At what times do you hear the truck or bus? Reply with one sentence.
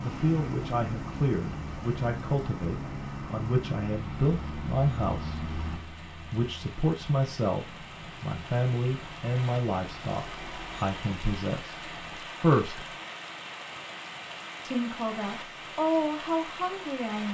The truck or bus can be heard from 0.0 to 12.2 s.